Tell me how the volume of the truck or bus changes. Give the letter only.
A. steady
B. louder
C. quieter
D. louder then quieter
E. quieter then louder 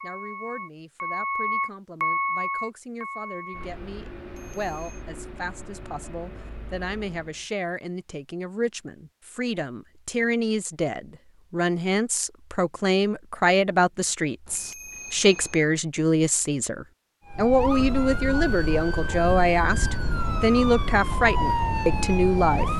C.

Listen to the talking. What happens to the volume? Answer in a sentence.
The volume of the talking goes up.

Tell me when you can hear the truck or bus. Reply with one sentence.
You can hear the truck or bus from 0.0 to 7.5 s.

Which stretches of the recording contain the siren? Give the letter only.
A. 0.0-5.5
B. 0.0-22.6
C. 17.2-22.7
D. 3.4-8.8
C.